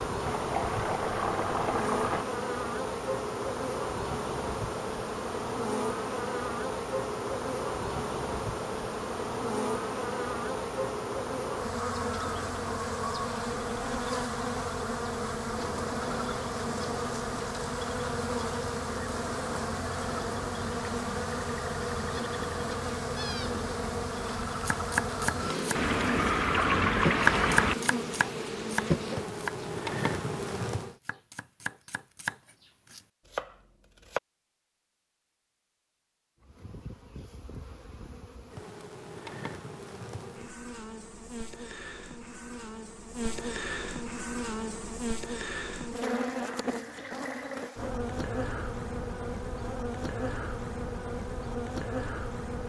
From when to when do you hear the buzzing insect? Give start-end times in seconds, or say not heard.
0.0-30.9, 36.4-52.6.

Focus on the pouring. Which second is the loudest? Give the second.
27 s.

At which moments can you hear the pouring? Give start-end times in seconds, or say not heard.
0.2-2.2, 25.8-27.8, 46.0-47.7.